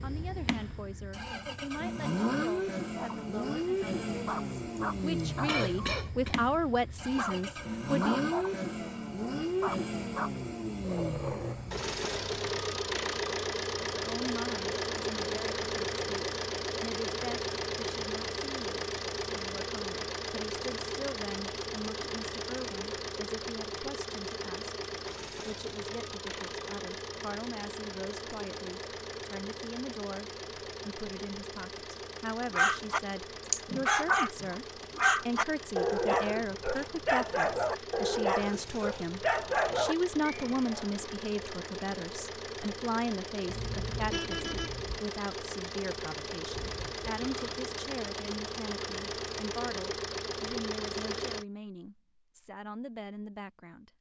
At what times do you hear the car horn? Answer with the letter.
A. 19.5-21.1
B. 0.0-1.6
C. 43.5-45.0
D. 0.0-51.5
C.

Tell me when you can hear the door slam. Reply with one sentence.
You can't hear the door slam here.